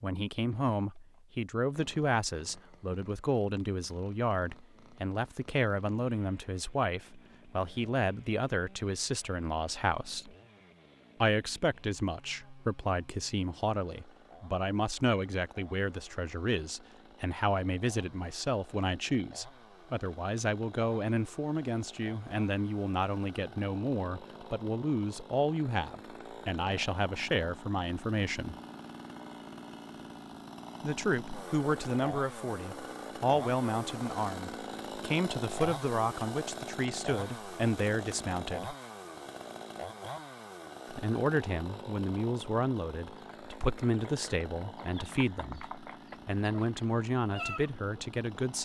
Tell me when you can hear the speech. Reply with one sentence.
The speech can be heard from 0.0 to 10.3 s, from 11.2 to 28.6 s, from 30.8 to 38.8 s and from 40.9 to 48.5 s.